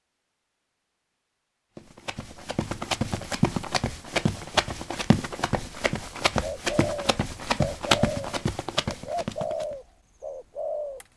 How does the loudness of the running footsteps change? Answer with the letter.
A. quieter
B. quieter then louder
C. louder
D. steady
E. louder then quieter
D.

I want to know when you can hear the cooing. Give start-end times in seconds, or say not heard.
6.4-11.1.